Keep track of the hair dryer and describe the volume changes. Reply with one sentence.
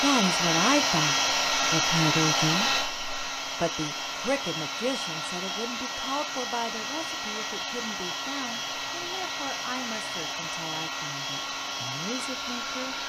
The volume of the hair dryer goes down.